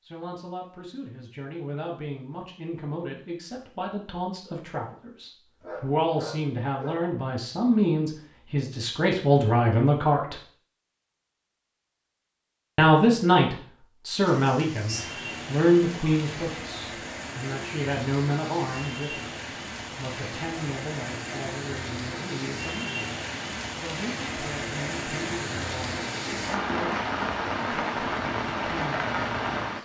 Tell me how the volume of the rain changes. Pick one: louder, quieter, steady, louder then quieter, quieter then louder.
louder.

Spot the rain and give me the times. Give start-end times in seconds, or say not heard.
14.2-29.8.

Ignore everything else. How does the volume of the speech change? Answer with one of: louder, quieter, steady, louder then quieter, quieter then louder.
louder then quieter.